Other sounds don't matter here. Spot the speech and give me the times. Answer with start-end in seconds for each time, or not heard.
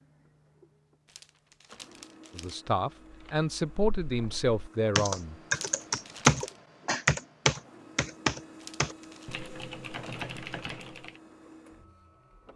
2.4-5.3.